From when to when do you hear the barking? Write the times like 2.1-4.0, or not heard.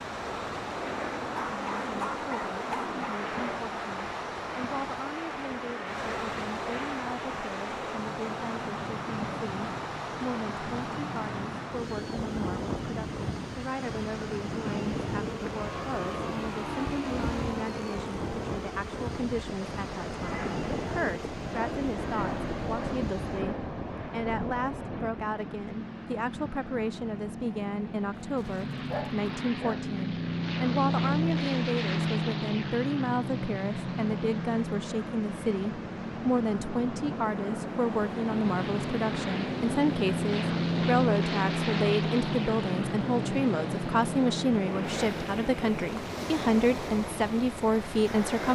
1.3-3.2, 28.1-29.9.